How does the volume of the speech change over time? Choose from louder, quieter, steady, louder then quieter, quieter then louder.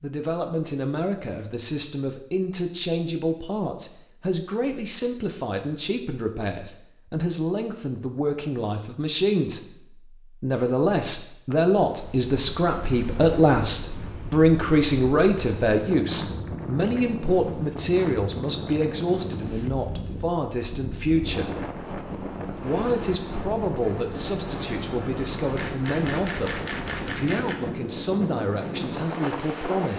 louder then quieter.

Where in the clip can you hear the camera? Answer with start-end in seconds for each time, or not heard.
25.6-27.6.